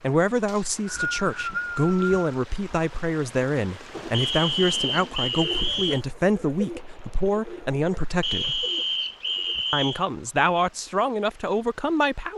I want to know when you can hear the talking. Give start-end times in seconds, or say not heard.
0.0-8.7, 9.7-12.3.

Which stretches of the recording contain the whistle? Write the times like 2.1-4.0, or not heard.
0.5-2.2, 4.1-6.0, 8.2-10.0.